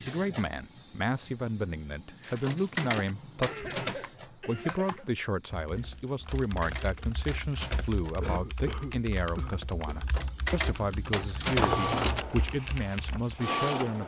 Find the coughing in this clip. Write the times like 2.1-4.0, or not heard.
3.4-5.0, 8.2-10.1.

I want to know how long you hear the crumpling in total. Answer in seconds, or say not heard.
3 s.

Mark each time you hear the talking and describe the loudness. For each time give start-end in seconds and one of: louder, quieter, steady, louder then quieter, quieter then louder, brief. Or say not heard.
0.0-14.0 steady.